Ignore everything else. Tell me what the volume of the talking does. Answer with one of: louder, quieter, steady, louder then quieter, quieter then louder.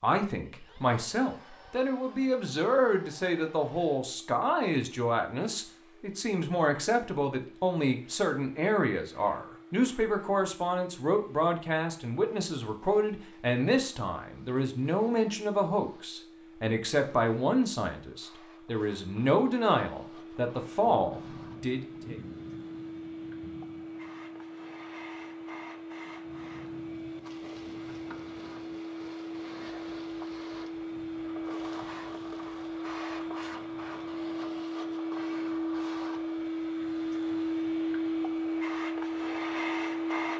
steady.